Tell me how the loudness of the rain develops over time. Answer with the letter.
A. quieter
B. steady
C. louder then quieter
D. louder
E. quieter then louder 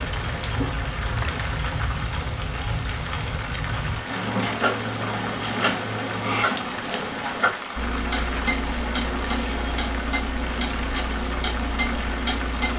B.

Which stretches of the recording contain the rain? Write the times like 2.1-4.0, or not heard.
0.0-12.7.